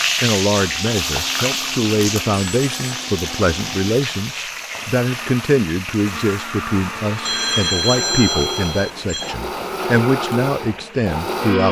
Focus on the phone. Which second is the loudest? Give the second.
8 s.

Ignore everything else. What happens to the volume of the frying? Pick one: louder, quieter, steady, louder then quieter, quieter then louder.
quieter.